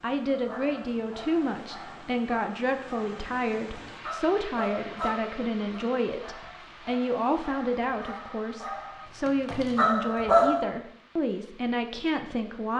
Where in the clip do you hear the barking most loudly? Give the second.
10 s.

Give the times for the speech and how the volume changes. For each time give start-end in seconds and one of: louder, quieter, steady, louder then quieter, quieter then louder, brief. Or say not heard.
0.0-12.7 steady.